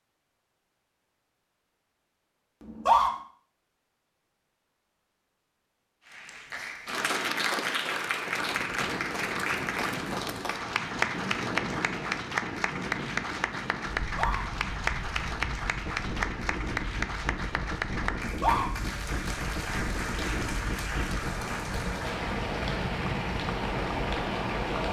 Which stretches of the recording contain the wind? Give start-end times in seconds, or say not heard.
8.2-24.8.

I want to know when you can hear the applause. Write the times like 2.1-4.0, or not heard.
6.1-24.8.